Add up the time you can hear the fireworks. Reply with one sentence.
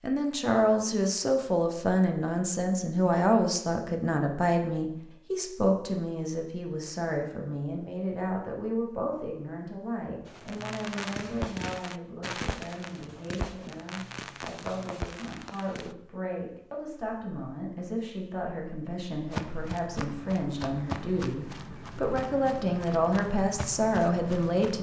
You can hear the fireworks for 6 seconds altogether.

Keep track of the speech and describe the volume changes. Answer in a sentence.
The loudness of the speech goes down, then up.